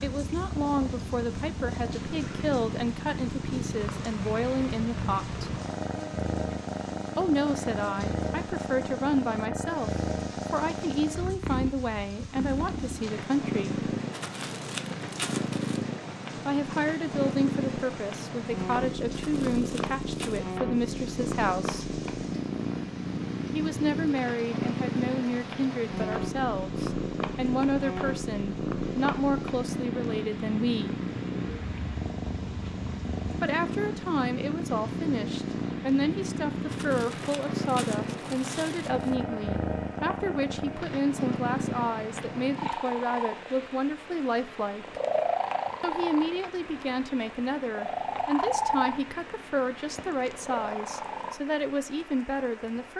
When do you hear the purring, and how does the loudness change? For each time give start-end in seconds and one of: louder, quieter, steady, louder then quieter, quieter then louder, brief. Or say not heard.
0.0-51.4 steady.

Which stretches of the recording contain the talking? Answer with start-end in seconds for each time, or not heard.
0.0-5.5, 7.2-13.8, 16.4-21.9, 23.5-30.9, 33.4-45.0, 45.8-52.9.